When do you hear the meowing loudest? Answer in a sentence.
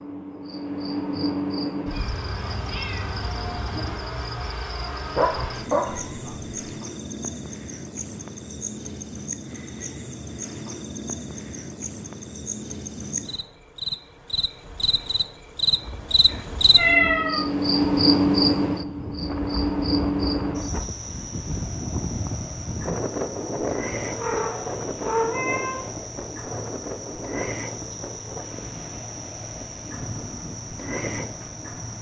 The volume of the meowing peaks at 17 seconds.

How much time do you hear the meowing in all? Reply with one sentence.
The meowing can be heard for 5 seconds in total.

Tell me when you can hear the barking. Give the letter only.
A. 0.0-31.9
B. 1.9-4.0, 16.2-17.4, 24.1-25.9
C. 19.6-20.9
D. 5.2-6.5
D.